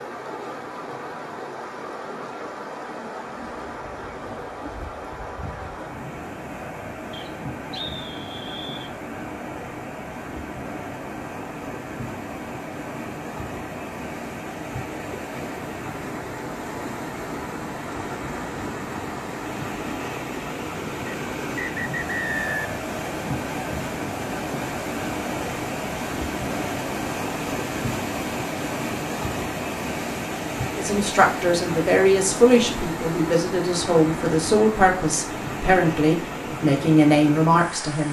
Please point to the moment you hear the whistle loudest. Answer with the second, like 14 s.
22 s.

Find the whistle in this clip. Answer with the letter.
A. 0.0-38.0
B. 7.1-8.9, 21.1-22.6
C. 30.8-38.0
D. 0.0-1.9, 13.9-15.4
B.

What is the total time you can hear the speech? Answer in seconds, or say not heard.
7 s.